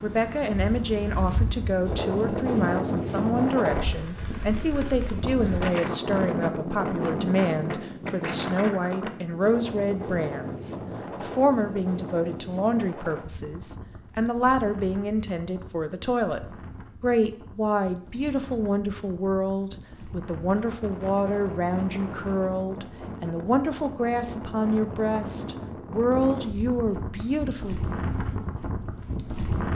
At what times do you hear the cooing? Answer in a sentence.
You can't hear the cooing here.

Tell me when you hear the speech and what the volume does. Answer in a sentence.
The speech can be heard from 0.0 to 27.8 s, at a steady volume.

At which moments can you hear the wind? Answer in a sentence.
The wind can be heard from 0.0 to 29.6 s.